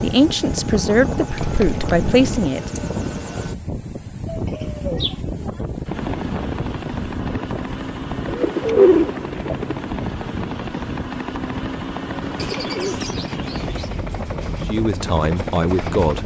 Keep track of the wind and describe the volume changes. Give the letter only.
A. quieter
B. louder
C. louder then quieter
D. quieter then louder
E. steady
A.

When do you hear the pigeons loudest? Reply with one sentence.
The loudest moment of the pigeons is at 9 seconds.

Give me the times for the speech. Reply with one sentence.
The speech can be heard from 0.0 to 2.7 s and from 14.7 to 16.2 s.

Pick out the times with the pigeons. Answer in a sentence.
You can hear the pigeons from 1.3 to 2.5 s, from 4.2 to 5.2 s, from 8.2 to 9.8 s and from 12.3 to 14.0 s.